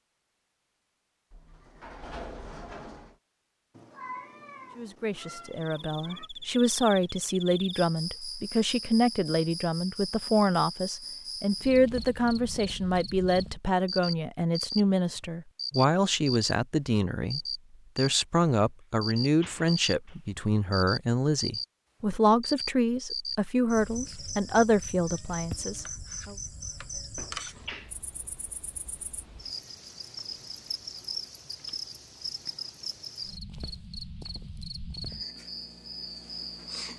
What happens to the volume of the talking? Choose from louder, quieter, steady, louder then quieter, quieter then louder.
steady.